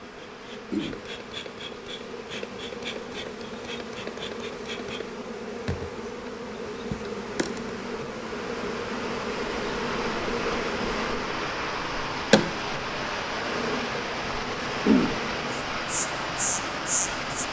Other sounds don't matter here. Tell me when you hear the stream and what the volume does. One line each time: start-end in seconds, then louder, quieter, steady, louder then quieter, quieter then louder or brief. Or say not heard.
0.0-17.4 louder.